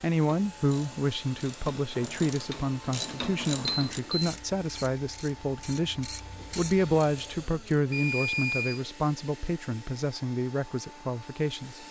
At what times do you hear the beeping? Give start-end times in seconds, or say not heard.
3.6-4.3, 7.9-8.8.